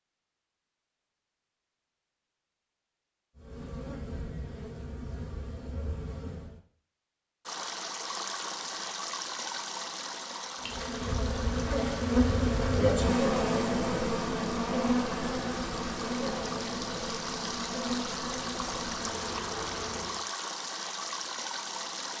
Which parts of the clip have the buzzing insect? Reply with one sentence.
The buzzing insect can be heard from 3.4 to 6.6 s and from 10.6 to 20.2 s.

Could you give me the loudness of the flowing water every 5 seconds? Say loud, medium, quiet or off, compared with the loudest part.
off, loud, medium, loud, loud.